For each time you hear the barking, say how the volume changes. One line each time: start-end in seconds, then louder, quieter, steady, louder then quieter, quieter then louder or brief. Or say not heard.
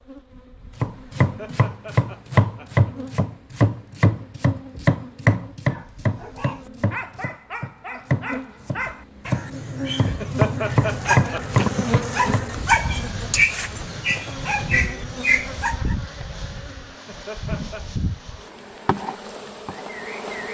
5.7-15.9 louder.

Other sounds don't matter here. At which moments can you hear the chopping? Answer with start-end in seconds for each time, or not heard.
0.8-12.4.